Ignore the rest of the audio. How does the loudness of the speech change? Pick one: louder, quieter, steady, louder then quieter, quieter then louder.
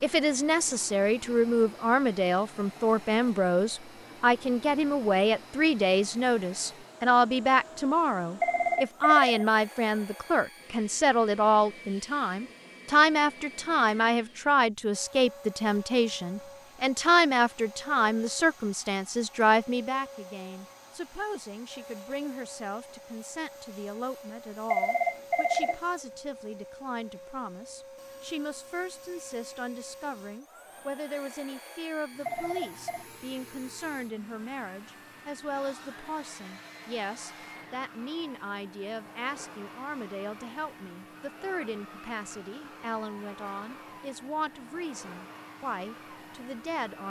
quieter.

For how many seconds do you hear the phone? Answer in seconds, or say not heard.
3 s.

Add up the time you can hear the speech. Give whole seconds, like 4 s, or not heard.
47 s.